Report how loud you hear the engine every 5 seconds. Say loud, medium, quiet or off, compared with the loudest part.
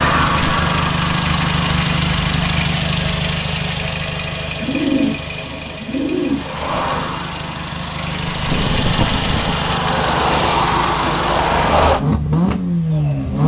loud, medium, loud.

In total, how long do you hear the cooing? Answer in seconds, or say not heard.
2 s.